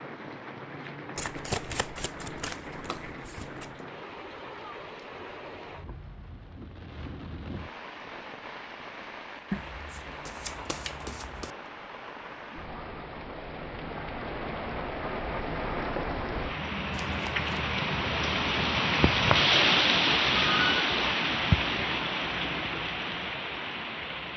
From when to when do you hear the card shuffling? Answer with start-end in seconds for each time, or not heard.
1.1-3.8, 9.5-11.5, 16.9-17.6.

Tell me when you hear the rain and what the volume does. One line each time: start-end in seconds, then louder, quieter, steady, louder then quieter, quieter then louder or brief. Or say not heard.
0.0-24.3 louder.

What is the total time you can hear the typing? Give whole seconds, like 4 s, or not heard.
not heard.